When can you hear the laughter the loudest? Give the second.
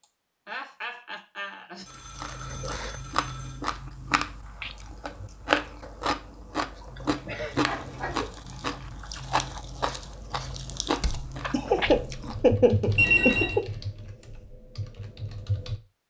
13 s.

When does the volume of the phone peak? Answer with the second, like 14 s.
13 s.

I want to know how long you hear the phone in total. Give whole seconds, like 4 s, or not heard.
3 s.